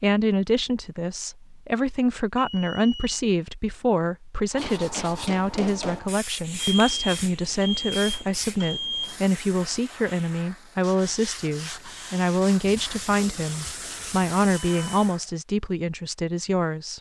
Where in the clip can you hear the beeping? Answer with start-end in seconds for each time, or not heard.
2.4-3.0, 6.5-9.2, 14.5-15.3.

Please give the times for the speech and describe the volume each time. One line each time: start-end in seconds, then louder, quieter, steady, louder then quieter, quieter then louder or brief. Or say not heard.
0.0-16.9 steady.